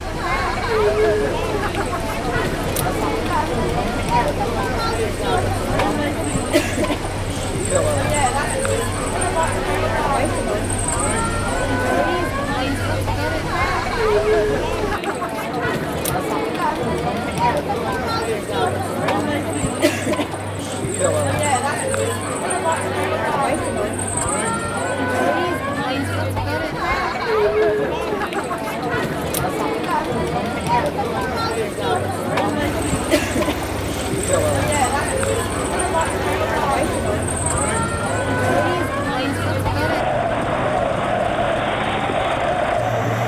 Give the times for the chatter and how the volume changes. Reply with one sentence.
The chatter can be heard from 0.0 to 43.2 s, at a steady volume.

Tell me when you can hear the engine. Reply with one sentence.
You can hear the engine from 0.0 to 15.0 s and from 32.6 to 43.2 s.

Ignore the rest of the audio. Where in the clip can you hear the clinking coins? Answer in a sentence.
The clinking coins can't be heard in this clip.